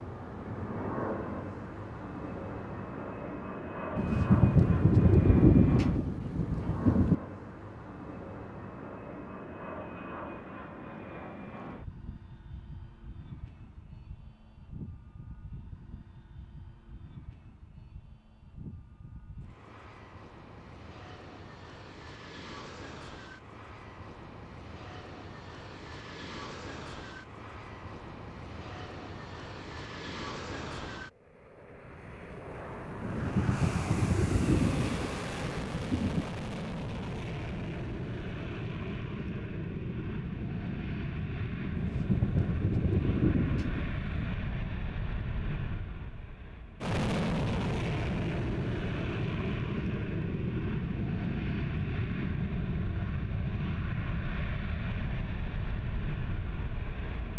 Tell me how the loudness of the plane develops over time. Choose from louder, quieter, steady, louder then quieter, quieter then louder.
quieter then louder.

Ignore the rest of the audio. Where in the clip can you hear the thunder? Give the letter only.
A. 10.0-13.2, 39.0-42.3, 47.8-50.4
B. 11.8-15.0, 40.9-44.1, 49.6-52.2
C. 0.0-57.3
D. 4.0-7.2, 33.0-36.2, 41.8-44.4
D.